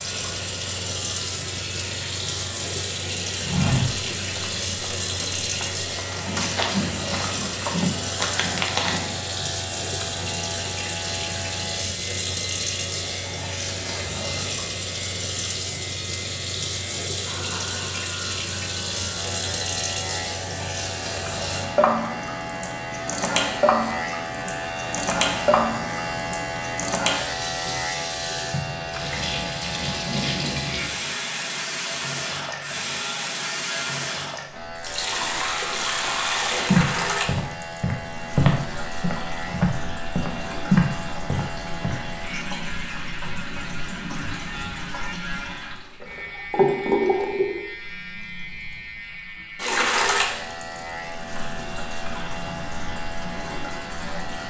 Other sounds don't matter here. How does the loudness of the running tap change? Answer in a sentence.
The volume of the running tap stays about the same.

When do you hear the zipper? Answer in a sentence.
The zipper can't be heard in this clip.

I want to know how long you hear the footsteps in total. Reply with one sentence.
The footsteps can be heard for 11 seconds in total.